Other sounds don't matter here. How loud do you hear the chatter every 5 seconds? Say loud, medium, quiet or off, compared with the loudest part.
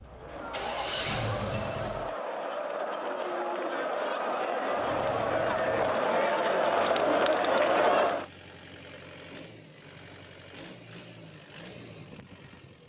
medium, loud, off.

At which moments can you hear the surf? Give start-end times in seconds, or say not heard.
not heard.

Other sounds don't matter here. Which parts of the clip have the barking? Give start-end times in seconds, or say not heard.
not heard.